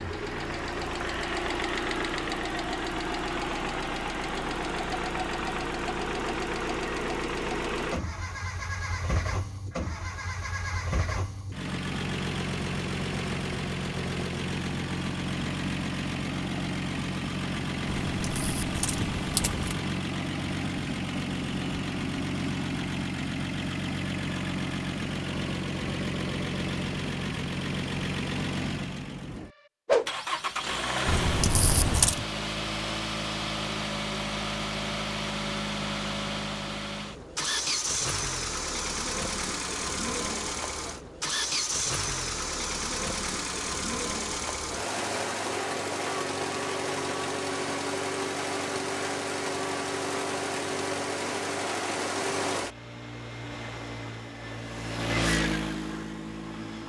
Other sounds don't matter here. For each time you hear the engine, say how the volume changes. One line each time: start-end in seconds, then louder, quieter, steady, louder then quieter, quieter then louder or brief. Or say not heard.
0.0-56.8 steady.